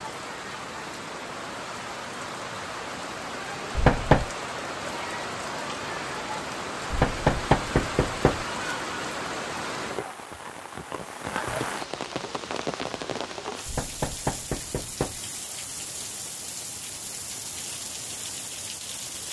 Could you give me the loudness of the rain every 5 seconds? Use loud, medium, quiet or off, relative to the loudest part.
loud, loud, loud, medium.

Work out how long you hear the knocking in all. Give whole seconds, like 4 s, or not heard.
4 s.